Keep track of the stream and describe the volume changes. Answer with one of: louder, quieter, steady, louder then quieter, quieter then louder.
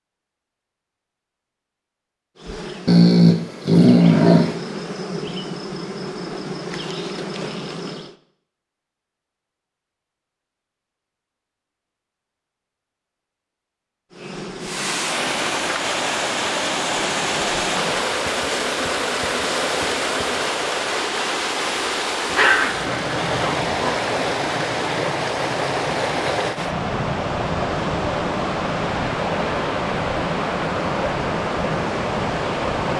steady.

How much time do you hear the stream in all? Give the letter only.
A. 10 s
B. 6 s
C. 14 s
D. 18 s
D.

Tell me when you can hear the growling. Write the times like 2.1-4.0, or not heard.
2.9-4.5, 22.3-23.9.